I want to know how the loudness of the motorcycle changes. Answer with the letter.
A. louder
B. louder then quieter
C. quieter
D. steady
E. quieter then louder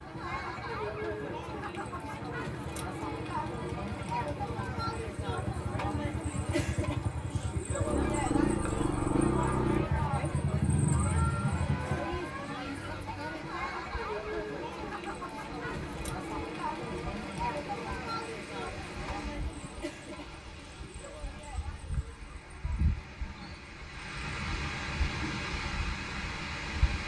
A.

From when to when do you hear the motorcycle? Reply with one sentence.
You can hear the motorcycle from 0.0 to 12.2 s.